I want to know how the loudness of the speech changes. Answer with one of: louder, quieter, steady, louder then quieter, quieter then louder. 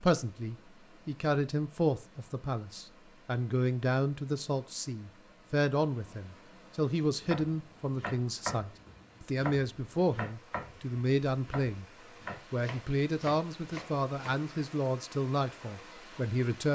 steady.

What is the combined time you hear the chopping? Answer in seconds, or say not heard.
7 s.